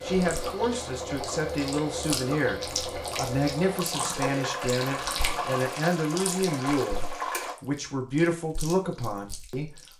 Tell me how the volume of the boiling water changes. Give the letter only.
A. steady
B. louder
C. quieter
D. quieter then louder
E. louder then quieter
A.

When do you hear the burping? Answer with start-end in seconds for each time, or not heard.
3.9-5.7.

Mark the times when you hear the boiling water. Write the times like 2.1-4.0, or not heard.
0.0-7.5.